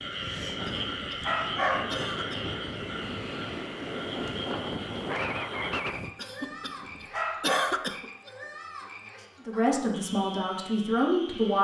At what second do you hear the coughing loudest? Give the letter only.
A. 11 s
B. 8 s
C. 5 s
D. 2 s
B.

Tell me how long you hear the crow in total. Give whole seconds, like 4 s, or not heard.
not heard.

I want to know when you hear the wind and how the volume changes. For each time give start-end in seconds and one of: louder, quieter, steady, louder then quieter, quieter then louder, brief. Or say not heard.
0.0-6.1 louder.